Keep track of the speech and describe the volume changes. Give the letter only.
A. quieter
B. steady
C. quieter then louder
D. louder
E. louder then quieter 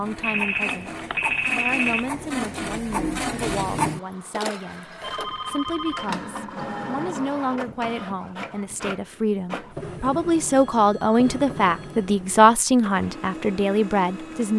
D.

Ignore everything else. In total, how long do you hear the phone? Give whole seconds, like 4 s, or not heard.
5 s.